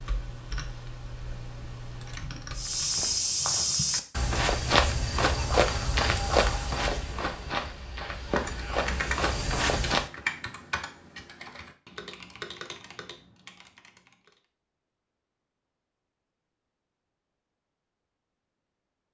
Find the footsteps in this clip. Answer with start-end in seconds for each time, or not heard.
2.5-10.1.